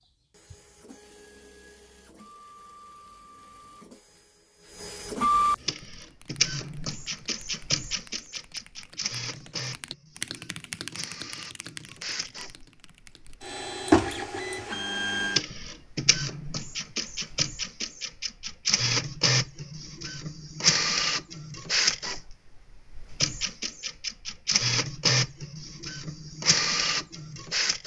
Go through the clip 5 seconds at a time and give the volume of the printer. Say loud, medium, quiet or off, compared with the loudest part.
quiet, loud, loud, loud, loud, loud.